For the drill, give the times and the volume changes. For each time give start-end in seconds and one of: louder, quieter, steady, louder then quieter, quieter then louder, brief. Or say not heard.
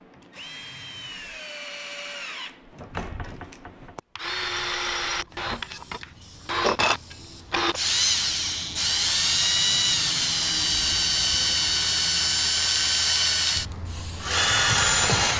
0.0-15.3 louder.